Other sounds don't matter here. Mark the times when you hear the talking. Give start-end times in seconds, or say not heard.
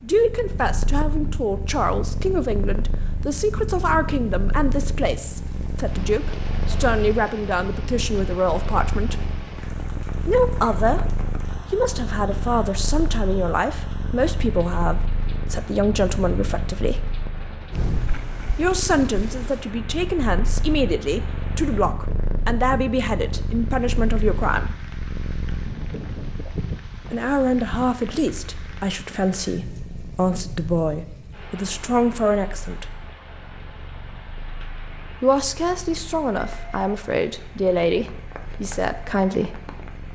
0.0-9.2, 10.2-17.1, 18.6-24.8, 27.1-32.9, 35.2-39.6.